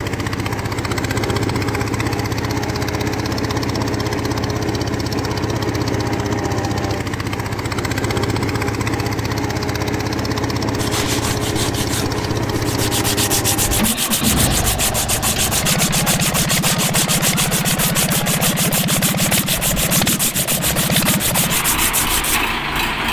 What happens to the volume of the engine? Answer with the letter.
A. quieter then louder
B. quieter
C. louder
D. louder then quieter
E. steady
E.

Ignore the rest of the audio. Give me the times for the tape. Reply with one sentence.
You can't hear the tape here.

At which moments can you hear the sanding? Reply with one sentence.
The sanding can be heard from 10.8 to 22.4 s.